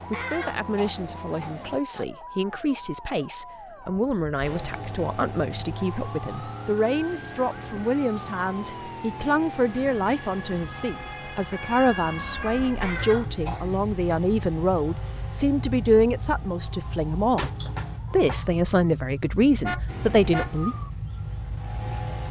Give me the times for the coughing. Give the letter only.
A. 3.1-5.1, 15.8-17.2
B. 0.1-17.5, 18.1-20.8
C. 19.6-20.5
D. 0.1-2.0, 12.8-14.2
D.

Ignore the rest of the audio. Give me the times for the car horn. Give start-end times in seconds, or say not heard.
19.6-20.5.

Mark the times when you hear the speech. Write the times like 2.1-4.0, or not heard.
0.1-17.5, 18.1-20.8.